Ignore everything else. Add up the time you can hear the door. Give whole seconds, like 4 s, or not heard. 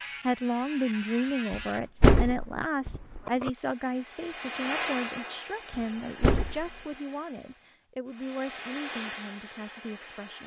3 s.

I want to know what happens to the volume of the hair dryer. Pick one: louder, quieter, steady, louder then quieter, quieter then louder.
quieter then louder.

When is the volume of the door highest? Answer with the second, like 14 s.
2 s.